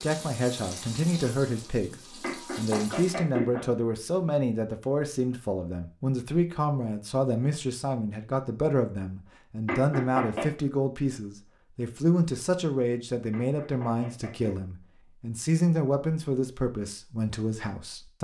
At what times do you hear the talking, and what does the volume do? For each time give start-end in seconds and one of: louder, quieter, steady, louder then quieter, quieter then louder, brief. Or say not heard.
0.0-18.2 steady.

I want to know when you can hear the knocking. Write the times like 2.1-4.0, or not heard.
2.2-3.6, 9.7-10.5, 13.3-14.6.